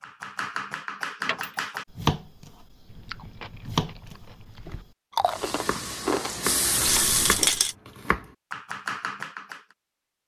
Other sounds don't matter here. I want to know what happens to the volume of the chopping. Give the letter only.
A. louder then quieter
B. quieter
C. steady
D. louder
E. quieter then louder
E.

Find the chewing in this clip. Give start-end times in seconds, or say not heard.
2.9-8.2.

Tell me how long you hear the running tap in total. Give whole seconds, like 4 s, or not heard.
2 s.